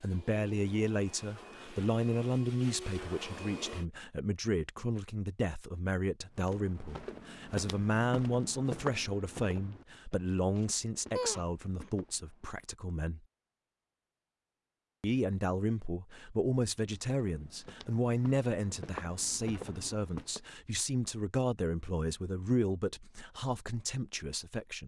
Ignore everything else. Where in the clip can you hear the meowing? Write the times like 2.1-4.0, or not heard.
11.2-11.9.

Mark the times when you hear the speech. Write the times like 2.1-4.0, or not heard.
0.0-13.2, 15.0-24.8.